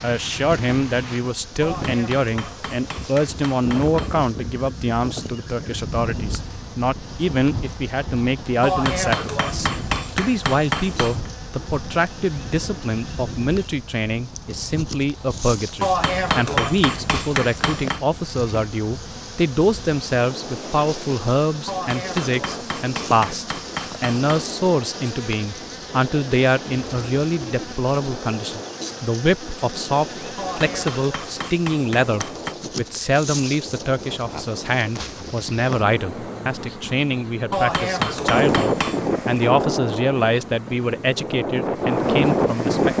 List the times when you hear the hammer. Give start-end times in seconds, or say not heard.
1.6-4.3, 8.6-11.3, 15.8-18.0, 21.6-24.5, 30.4-32.5, 37.5-39.0.